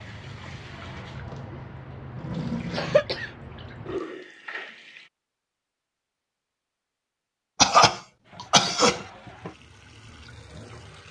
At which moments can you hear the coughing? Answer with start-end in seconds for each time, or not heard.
2.7-3.3, 7.6-9.0.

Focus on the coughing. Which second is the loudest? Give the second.
8 s.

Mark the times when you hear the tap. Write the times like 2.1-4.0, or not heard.
0.0-5.1, 8.2-11.0.